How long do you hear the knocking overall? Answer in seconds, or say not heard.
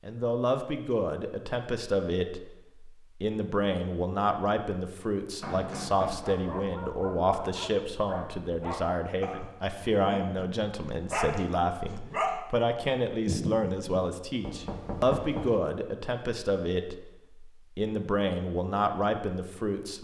2 s.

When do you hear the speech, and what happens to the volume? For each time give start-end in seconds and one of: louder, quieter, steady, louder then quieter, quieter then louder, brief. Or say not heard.
0.1-19.9 steady.